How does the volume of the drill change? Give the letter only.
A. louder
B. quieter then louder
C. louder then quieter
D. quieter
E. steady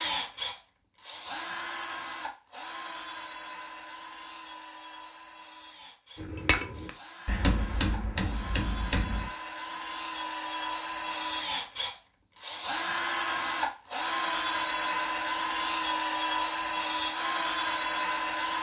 B.